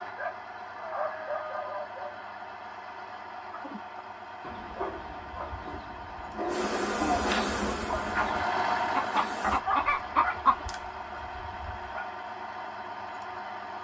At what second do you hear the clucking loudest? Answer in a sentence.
The volume of the clucking peaks at 10 seconds.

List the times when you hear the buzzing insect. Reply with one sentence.
You can hear the buzzing insect from 6.5 to 9.6 s.